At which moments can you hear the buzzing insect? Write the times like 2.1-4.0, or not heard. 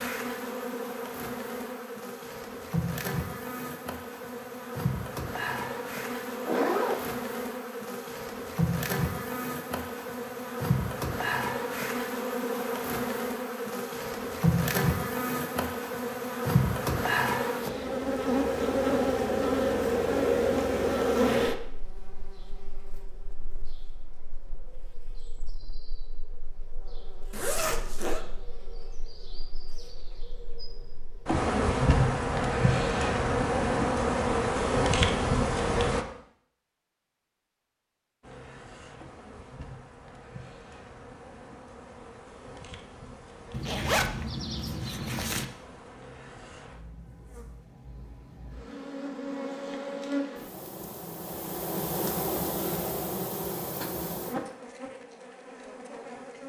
0.0-36.0, 38.2-56.4.